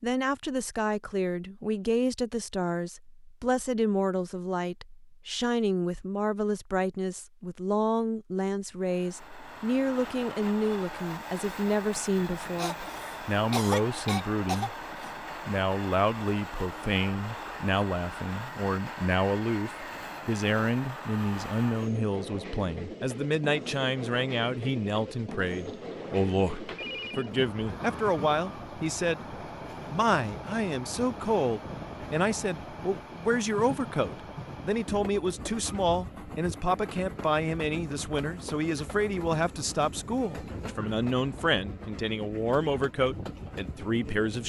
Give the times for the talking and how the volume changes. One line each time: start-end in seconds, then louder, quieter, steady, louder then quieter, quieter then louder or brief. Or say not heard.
0.0-14.8 steady
15.4-44.4 steady.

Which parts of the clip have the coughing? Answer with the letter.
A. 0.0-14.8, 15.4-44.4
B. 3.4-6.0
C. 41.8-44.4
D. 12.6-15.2
D.